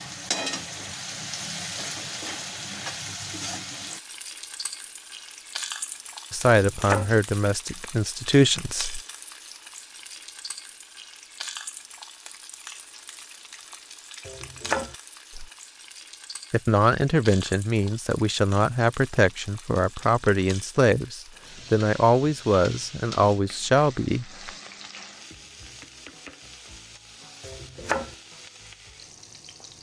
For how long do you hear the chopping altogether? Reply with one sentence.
The chopping can be heard for 2 seconds in total.